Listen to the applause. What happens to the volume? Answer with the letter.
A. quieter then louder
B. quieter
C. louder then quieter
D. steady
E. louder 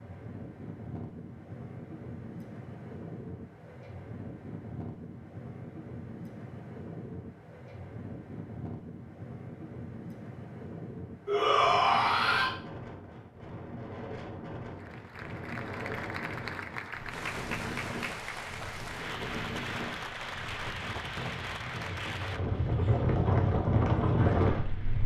B.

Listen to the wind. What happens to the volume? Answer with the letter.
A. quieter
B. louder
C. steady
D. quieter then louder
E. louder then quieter
B.